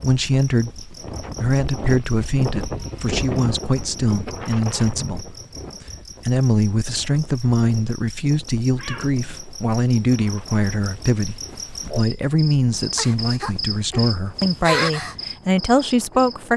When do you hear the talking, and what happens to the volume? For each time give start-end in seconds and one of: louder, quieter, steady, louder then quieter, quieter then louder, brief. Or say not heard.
0.0-16.5 steady.